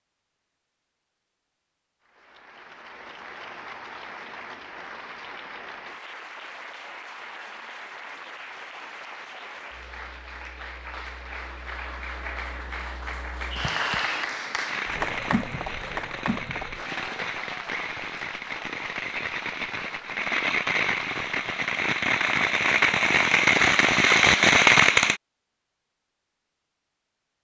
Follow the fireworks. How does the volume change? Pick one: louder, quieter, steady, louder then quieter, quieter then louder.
louder.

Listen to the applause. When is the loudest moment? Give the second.
14 s.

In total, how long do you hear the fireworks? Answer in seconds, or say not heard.
12 s.